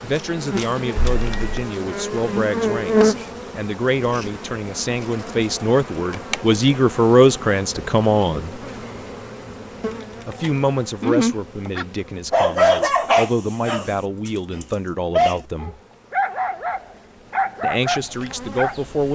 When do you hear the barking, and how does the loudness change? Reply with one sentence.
You can hear the barking from 11.0 to 18.8 s, getting quieter.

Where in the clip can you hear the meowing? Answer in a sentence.
The meowing can be heard from 0.9 to 1.6 s.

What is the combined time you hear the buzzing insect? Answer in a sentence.
You can hear the buzzing insect for 19 seconds altogether.